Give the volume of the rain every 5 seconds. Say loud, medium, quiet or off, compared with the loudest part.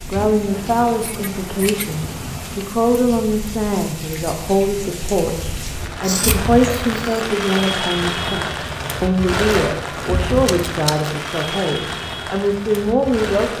medium, loud, loud.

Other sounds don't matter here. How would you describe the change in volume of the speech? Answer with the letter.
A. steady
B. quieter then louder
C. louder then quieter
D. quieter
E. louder
A.